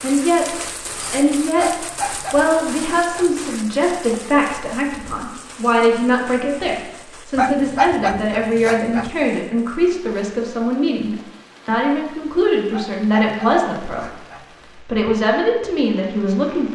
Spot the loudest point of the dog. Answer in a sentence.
The loudest moment of the dog is at 8 seconds.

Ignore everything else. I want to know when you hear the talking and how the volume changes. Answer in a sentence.
You can hear the talking from 0.0 to 16.7 s, at a steady volume.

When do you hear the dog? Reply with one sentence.
The dog can be heard from 1.6 to 3.3 s, from 7.3 to 9.1 s and from 12.7 to 14.4 s.